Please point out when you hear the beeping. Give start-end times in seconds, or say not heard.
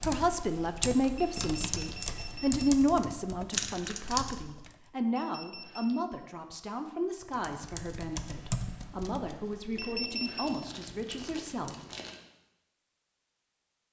1.1-2.6, 5.2-6.0, 9.8-10.6.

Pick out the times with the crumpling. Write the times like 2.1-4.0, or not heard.
3.5-4.3, 10.4-12.2.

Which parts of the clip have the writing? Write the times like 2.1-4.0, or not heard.
not heard.